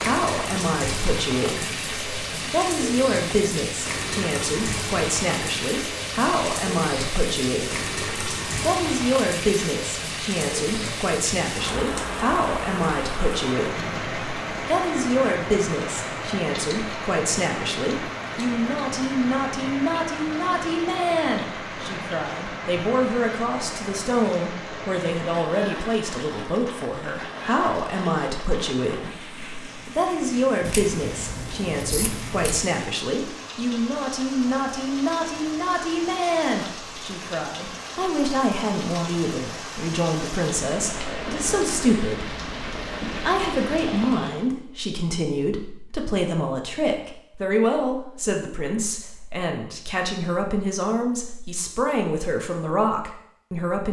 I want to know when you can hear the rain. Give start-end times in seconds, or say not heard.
0.0-44.5.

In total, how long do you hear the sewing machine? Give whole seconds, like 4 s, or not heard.
not heard.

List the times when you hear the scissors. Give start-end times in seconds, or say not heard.
30.6-32.6.